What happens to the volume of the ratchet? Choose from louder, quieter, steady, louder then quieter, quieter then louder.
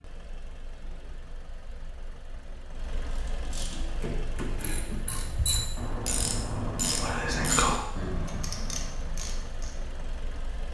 louder then quieter.